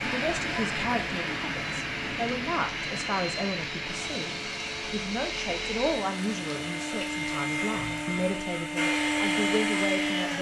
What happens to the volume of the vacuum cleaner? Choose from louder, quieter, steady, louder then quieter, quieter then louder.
louder.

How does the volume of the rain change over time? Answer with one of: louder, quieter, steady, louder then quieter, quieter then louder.
quieter.